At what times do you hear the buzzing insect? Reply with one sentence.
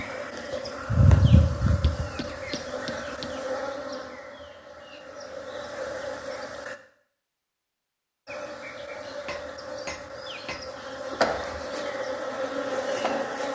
The buzzing insect can be heard from 0.0 to 6.8 s and from 8.2 to 13.5 s.